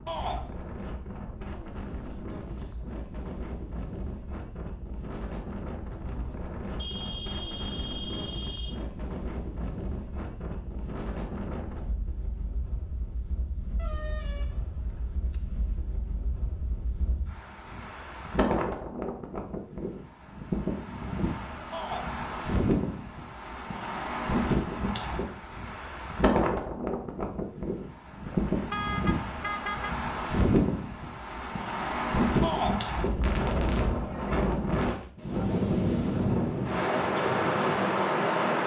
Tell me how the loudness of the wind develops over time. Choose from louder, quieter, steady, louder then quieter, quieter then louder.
louder.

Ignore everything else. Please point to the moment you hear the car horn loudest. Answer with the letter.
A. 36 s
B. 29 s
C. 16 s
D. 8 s
B.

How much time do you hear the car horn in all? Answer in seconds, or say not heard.
6 s.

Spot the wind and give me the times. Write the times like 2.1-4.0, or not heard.
0.0-38.6.